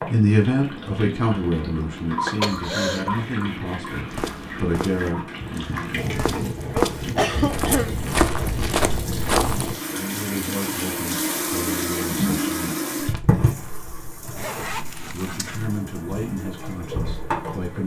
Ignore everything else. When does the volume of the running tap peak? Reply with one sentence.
The volume of the running tap peaks at 12 seconds.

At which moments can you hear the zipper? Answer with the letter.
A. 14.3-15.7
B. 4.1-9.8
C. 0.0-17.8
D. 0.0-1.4
A.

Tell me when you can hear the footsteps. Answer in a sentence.
You can hear the footsteps from 4.1 to 9.8 s.